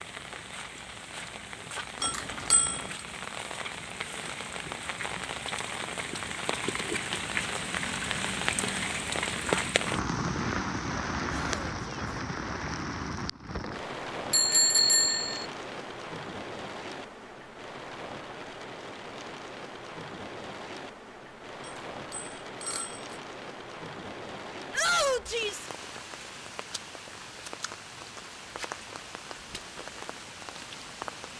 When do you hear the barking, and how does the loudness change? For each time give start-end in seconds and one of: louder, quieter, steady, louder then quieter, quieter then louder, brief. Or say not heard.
not heard.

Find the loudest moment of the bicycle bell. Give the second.
15 s.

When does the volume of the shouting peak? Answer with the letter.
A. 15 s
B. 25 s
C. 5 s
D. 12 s
B.